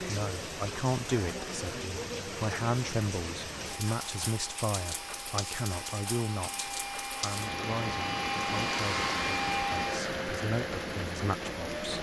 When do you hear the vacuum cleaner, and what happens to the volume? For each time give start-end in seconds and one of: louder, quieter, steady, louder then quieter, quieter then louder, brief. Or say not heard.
3.6-11.9 louder then quieter.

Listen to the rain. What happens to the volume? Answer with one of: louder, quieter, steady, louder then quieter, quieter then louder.
steady.